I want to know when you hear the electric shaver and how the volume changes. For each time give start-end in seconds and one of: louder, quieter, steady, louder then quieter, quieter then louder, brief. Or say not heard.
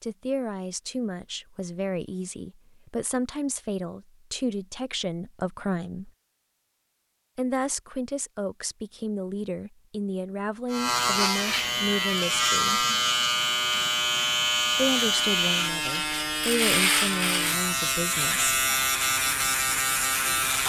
10.7-20.6 steady.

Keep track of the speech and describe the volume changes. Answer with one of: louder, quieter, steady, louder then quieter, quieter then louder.
steady.